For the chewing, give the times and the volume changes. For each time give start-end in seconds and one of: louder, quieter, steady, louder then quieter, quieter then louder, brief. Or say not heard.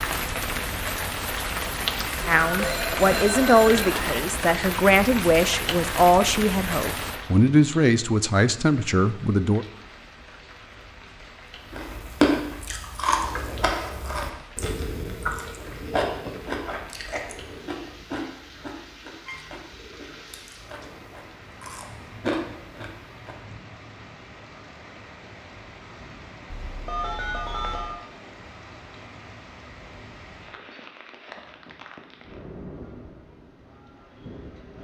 11.7-23.4 quieter then louder.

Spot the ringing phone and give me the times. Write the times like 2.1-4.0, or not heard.
2.2-4.2, 26.5-28.0.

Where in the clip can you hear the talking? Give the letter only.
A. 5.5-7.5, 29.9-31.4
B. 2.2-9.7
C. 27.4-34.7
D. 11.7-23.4
B.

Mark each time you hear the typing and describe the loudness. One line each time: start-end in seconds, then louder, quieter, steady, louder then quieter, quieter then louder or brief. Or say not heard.
not heard.